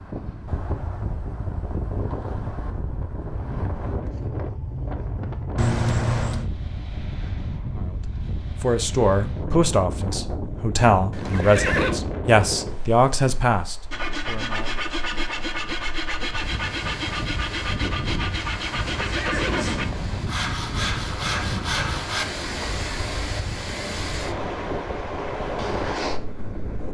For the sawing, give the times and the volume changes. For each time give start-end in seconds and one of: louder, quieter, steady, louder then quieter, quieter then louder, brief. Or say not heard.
13.9-22.7 steady.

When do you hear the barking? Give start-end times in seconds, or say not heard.
not heard.